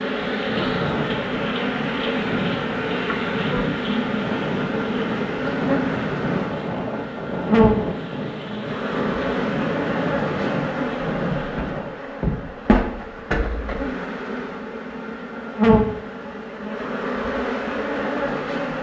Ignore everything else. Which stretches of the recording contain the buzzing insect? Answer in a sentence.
You can hear the buzzing insect from 0.0 to 18.7 s.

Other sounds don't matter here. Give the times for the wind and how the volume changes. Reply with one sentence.
The wind can be heard from 0.0 to 11.9 s, at a steady volume.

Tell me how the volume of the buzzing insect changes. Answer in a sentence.
The volume of the buzzing insect stays about the same.